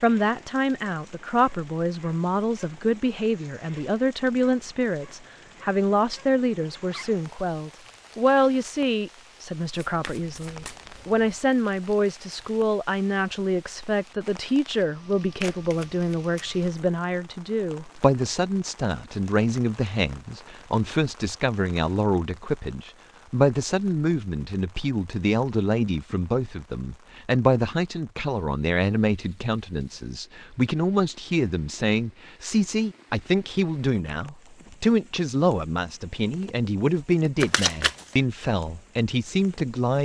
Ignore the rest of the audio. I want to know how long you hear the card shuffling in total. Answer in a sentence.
The card shuffling can be heard for 4 seconds in total.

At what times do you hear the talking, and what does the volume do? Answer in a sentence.
The talking can be heard from 0.0 to 39.9 s, at a steady volume.